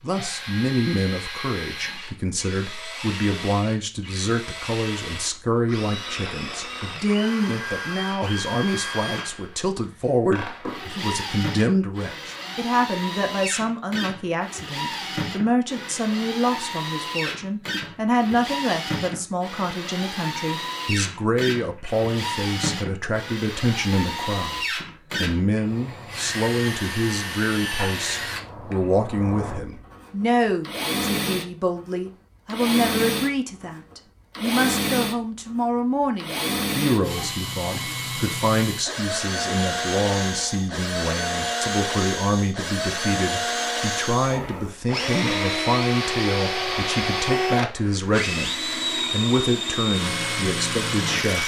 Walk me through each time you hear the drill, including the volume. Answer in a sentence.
The drill can be heard from 0.1 to 51.4 s, getting louder.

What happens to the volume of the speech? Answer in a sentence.
The loudness of the speech stays about the same.